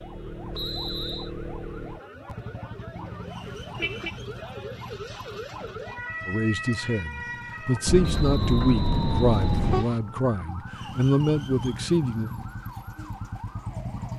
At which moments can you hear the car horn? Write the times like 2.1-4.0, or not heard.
3.0-4.2, 7.8-9.9.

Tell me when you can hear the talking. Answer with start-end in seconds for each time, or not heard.
6.2-12.3.